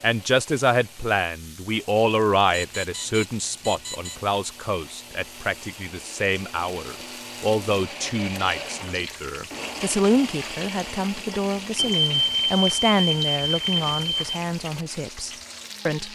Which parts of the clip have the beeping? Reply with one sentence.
The beeping can be heard from 2.5 to 4.2 s and from 11.8 to 14.2 s.